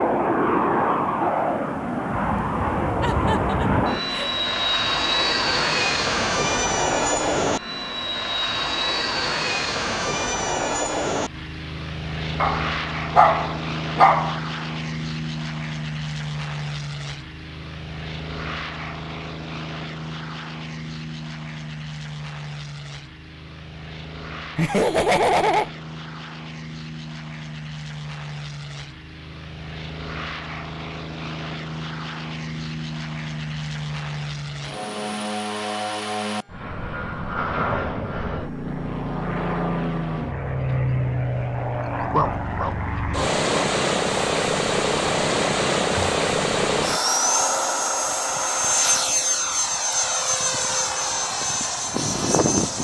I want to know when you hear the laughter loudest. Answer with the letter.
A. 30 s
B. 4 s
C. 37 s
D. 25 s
D.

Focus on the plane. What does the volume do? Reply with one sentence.
The volume of the plane goes down, then up.